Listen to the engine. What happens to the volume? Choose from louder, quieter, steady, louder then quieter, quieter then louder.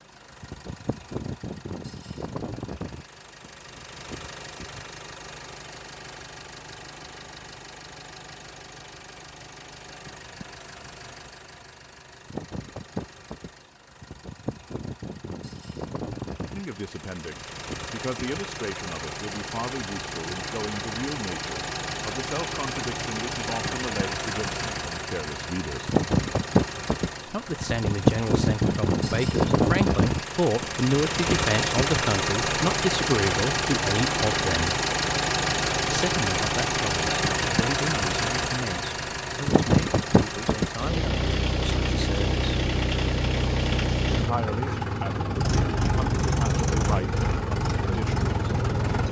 louder.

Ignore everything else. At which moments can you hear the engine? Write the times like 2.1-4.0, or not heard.
0.0-49.0.